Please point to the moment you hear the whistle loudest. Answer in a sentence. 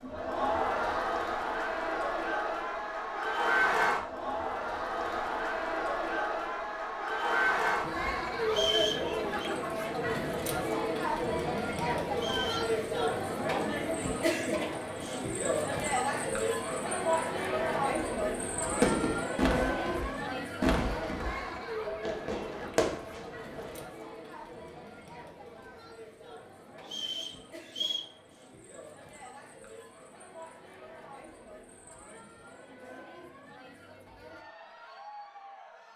The loudest moment of the whistle is at 9 seconds.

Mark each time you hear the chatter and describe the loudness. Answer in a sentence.
The chatter can be heard from 0.0 to 35.9 s, getting quieter.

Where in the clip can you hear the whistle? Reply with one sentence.
The whistle can be heard from 8.4 to 9.5 s, from 12.2 to 12.8 s and from 26.8 to 28.1 s.